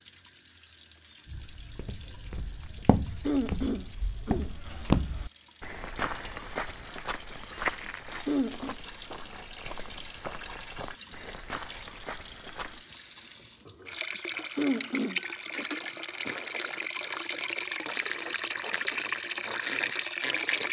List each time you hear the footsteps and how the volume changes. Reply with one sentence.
You can hear the footsteps from 1.2 to 12.8 s, getting louder then quieter.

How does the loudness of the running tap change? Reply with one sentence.
The volume of the running tap goes up.